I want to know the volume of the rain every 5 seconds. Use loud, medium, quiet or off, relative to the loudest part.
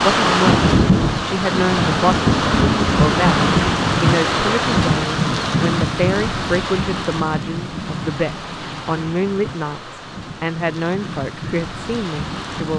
loud, medium, quiet.